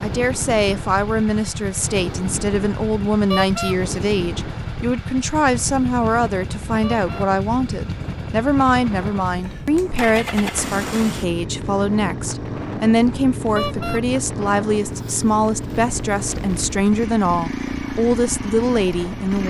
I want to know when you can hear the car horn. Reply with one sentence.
You can hear the car horn from 3.3 to 3.8 s, from 6.8 to 7.3 s and from 13.6 to 14.0 s.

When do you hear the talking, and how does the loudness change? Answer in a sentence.
You can hear the talking from 0.0 to 19.4 s, at a steady volume.